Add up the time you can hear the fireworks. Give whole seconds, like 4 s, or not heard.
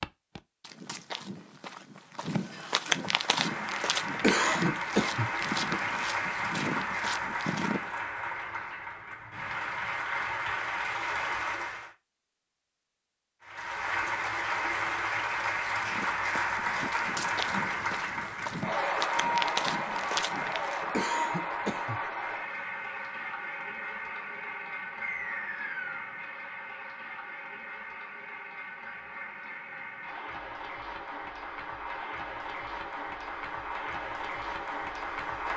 not heard.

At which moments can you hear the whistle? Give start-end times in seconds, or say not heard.
25.0-26.1.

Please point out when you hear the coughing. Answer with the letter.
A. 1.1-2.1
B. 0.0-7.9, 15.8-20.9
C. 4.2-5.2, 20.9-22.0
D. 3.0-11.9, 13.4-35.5
C.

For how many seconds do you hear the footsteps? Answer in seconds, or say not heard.
13 s.